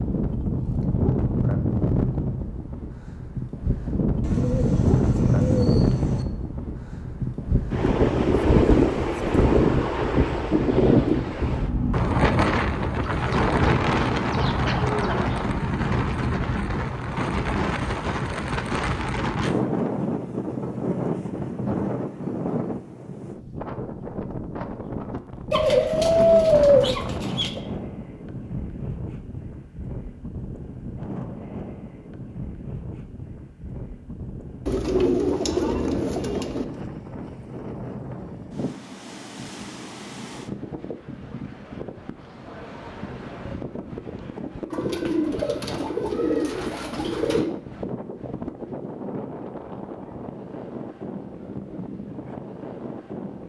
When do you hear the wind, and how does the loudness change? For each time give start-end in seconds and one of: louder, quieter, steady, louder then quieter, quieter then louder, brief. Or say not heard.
0.0-53.4 quieter.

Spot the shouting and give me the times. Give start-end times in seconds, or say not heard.
not heard.